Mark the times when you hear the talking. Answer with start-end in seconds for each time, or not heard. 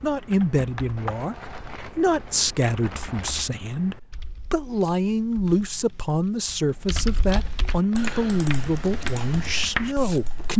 0.0-10.5.